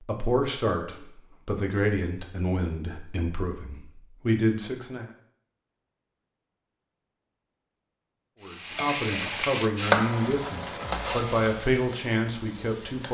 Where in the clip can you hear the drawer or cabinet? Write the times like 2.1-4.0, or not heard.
not heard.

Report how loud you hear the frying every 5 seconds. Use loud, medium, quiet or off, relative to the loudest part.
off, loud, medium.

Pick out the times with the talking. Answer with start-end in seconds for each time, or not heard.
0.0-5.1, 8.4-13.0.